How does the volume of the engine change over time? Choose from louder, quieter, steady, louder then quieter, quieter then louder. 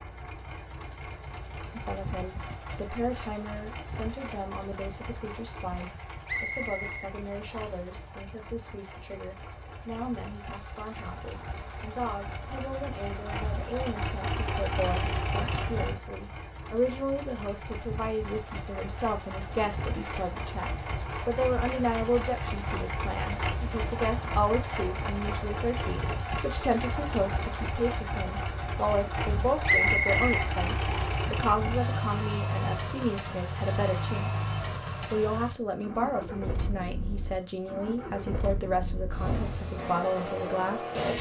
louder.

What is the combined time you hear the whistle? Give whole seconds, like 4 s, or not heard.
3 s.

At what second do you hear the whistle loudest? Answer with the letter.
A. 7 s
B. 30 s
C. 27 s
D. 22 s
B.